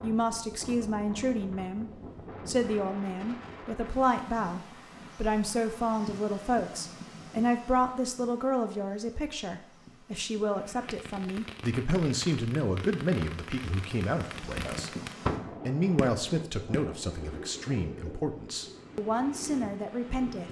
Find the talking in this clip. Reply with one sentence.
You can hear the talking from 0.0 to 14.9 s and from 15.7 to 20.4 s.